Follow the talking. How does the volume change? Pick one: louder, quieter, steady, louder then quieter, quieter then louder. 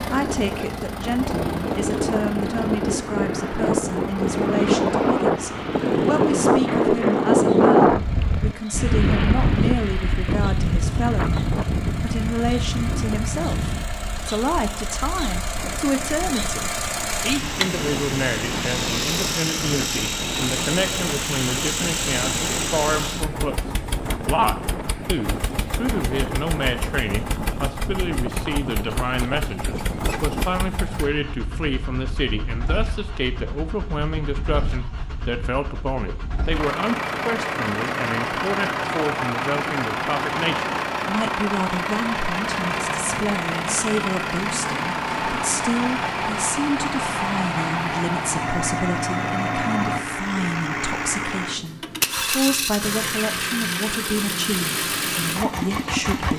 steady.